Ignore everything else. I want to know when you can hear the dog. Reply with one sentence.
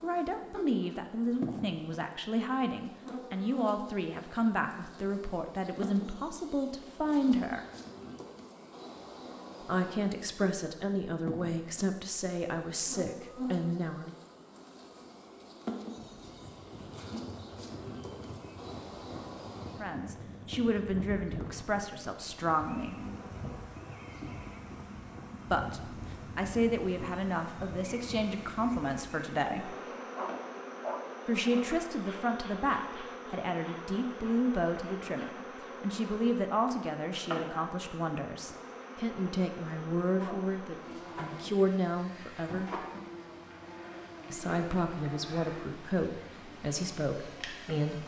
The dog can be heard from 30.1 to 31.6 s.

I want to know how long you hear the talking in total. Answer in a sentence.
The talking can be heard for 35 seconds in total.